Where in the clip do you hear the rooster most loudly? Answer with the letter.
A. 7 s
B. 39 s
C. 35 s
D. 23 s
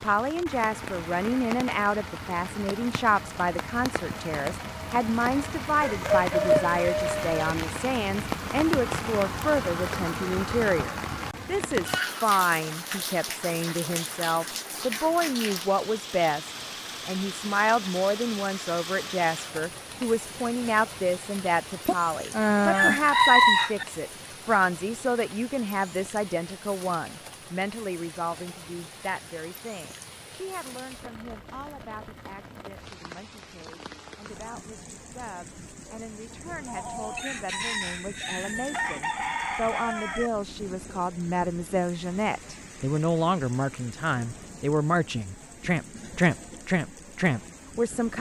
D.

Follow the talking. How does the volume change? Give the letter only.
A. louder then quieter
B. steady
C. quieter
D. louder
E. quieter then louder
E.